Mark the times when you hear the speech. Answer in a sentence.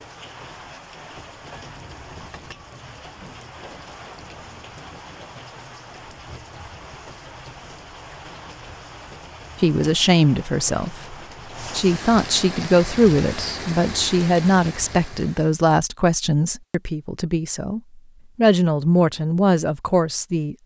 You can hear the speech from 9.6 to 20.6 s.